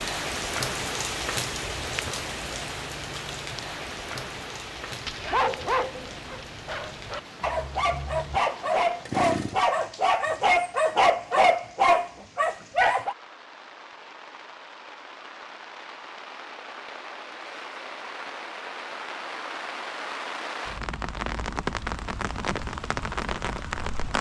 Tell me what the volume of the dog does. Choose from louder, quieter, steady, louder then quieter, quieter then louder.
louder.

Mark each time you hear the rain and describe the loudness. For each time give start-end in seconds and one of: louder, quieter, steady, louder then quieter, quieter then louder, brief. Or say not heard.
0.0-24.1 quieter then louder.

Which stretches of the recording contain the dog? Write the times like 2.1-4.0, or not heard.
5.0-13.2.